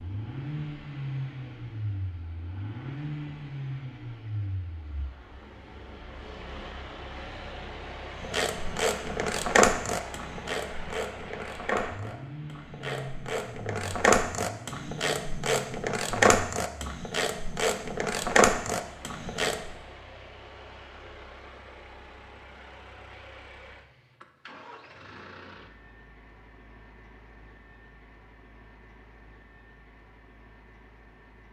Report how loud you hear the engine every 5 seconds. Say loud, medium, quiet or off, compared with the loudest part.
loud, medium, medium, medium, medium, quiet, quiet.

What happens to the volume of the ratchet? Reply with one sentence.
The loudness of the ratchet goes down, then up.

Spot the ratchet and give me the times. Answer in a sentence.
The ratchet can be heard from 8.2 to 19.7 s.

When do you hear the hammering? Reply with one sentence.
You can't hear the hammering here.